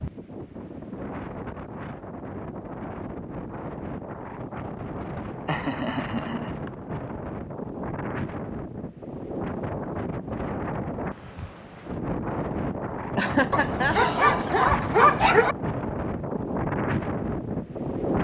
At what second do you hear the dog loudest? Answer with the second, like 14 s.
15 s.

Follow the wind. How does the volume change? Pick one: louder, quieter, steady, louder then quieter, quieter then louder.
louder.